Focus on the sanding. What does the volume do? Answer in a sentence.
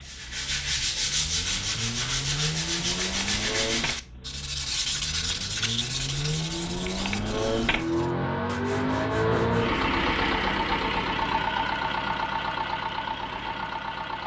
The volume of the sanding goes down.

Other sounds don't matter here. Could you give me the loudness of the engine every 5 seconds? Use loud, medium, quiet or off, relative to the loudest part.
medium, loud, loud.